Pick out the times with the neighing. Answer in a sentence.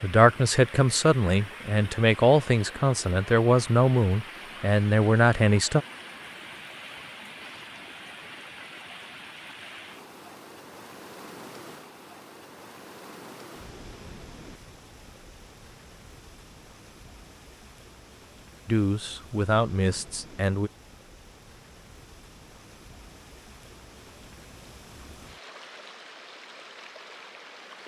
You can't hear the neighing here.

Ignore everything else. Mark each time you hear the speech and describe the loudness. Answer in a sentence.
You can hear the speech from 0.0 to 5.8 s, at a steady volume; and briefly from 18.6 to 20.7 s.